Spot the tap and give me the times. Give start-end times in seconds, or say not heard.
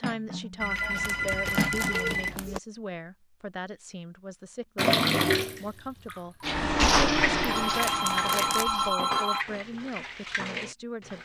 4.8-8.9.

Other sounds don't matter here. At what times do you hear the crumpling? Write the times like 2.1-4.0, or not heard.
0.9-2.5, 7.7-8.7.